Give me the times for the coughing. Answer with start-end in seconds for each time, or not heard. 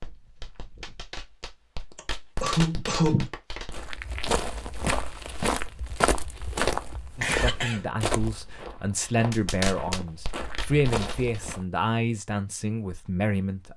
1.9-3.3, 7.2-7.8.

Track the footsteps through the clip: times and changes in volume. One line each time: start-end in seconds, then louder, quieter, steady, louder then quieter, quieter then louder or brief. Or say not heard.
3.7-11.7 quieter then louder.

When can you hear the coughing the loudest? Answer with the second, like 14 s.
3 s.